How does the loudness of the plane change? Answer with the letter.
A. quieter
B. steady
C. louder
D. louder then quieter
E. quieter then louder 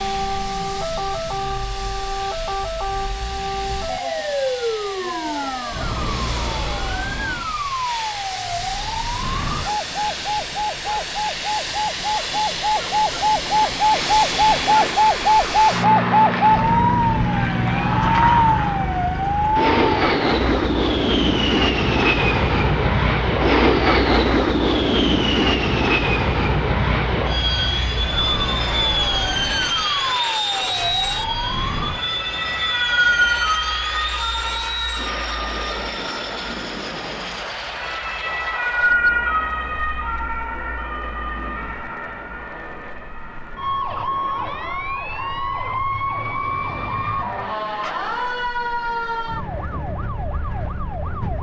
D.